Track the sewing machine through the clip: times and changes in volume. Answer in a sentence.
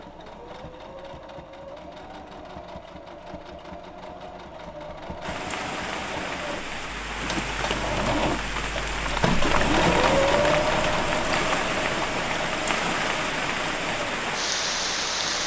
The sewing machine can be heard from 0.0 to 15.4 s, getting louder then quieter.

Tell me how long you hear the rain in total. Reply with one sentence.
You can hear the rain for 10 seconds altogether.